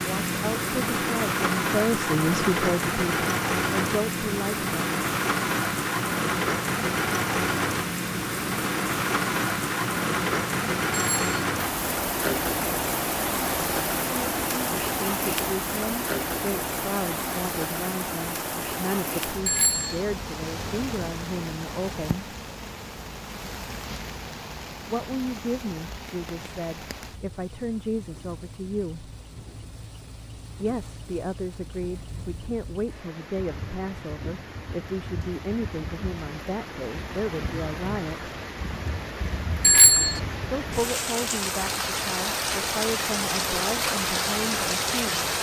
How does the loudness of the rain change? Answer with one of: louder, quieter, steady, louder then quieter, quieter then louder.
quieter then louder.